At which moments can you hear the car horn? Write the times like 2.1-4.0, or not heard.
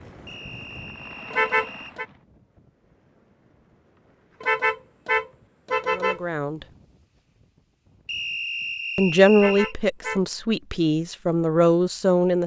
1.3-2.0, 4.4-6.2, 9.3-10.2.